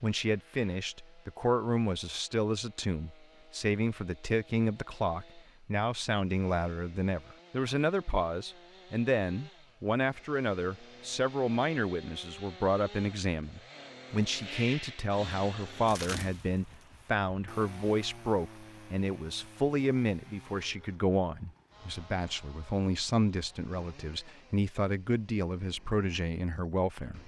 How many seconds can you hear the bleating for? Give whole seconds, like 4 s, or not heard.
not heard.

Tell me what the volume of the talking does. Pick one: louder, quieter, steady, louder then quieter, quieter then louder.
steady.